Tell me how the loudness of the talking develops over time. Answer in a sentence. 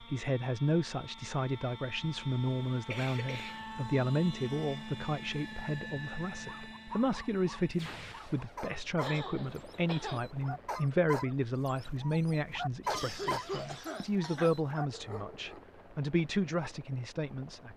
The loudness of the talking stays about the same.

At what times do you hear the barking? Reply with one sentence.
You can hear the barking from 6.5 to 15.8 s.